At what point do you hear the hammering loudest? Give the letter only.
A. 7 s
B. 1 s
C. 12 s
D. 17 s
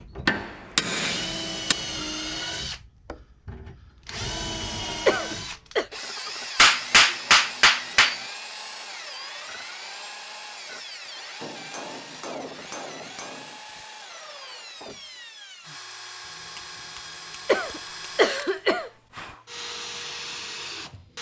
A.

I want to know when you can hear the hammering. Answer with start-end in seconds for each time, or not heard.
0.2-1.8, 6.5-8.2, 11.4-13.6, 16.2-18.2.